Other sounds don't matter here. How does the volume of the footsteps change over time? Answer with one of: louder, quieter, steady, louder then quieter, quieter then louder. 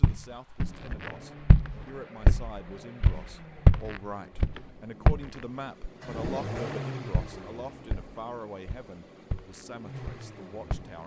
quieter.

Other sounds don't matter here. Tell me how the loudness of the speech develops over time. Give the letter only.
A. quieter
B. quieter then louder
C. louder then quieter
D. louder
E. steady
C.